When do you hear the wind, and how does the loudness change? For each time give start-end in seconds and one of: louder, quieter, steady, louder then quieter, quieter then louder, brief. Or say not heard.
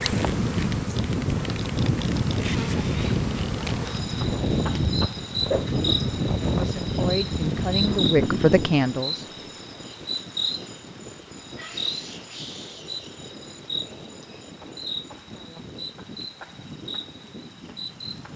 0.0-18.3 quieter.